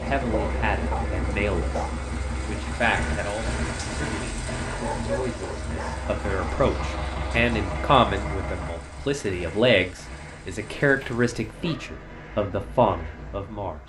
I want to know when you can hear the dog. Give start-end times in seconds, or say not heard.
0.2-1.9, 4.7-6.0, 10.8-12.1.